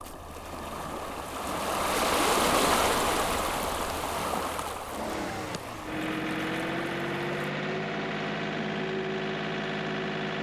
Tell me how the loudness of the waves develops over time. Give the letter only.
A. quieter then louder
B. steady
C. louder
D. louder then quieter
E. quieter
D.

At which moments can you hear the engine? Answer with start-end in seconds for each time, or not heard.
4.8-10.3.